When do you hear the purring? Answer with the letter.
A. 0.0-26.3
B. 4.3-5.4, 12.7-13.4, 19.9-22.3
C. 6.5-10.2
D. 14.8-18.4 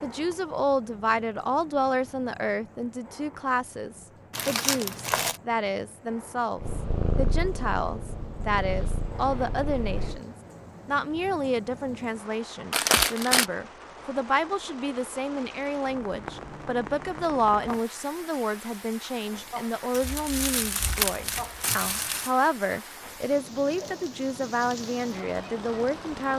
C.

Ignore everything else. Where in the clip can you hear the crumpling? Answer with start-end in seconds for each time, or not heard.
4.3-5.4, 12.7-13.4, 19.9-22.3.